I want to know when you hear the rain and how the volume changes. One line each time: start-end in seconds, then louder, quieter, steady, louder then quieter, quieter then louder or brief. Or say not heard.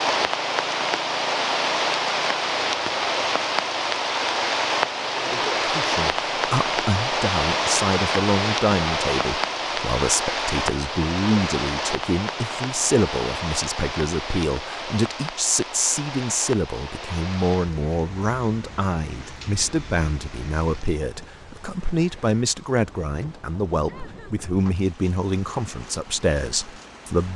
0.0-27.3 quieter.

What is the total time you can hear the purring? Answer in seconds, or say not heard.
not heard.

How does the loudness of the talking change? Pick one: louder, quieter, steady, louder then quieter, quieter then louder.
steady.